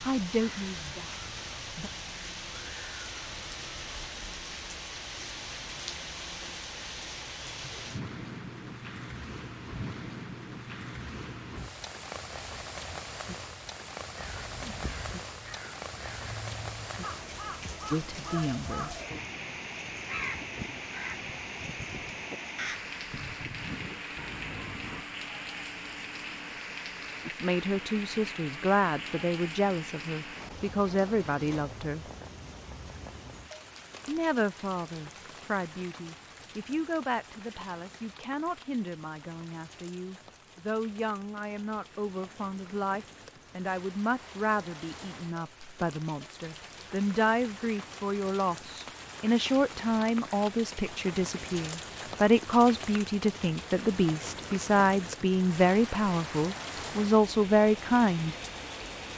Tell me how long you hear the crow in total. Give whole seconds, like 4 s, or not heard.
11 s.